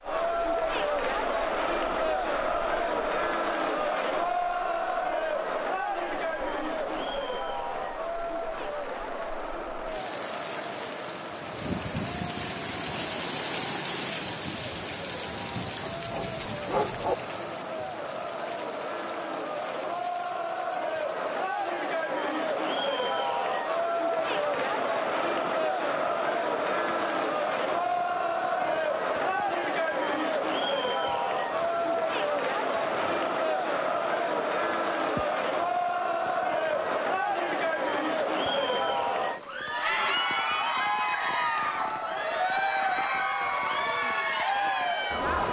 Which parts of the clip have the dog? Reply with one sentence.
You can hear the dog from 15.9 to 17.1 s.